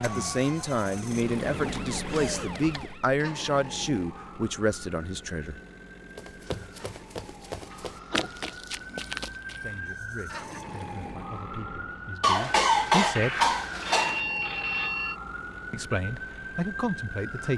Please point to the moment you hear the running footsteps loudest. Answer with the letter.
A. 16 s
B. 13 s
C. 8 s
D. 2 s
C.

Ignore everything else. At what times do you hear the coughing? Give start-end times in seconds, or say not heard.
1.6-2.8, 7.7-8.6, 12.2-14.2.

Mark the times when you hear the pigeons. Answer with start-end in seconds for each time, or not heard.
not heard.